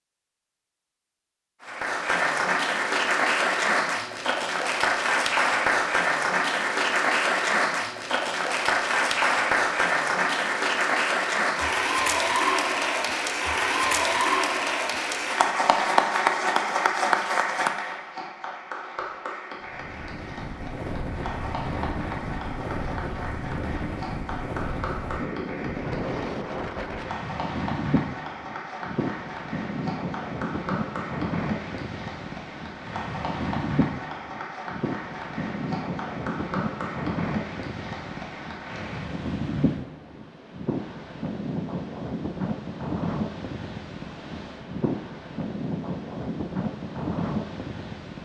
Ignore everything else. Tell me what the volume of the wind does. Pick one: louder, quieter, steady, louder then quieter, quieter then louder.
steady.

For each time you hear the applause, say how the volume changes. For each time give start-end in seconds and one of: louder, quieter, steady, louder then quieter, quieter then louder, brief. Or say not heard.
1.6-39.2 quieter.